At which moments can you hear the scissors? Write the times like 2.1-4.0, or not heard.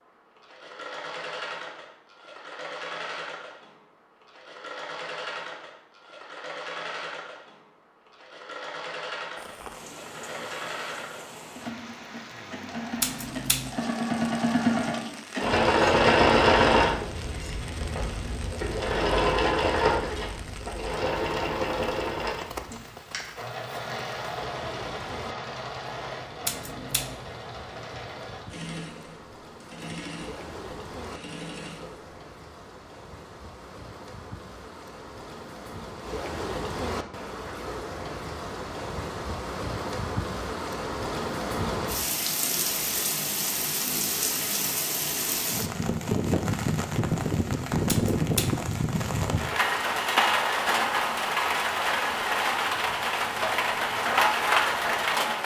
12.9-13.7, 26.4-27.1, 47.9-48.6.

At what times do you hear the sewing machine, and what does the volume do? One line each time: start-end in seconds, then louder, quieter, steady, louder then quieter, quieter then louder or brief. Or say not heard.
0.0-32.1 louder then quieter.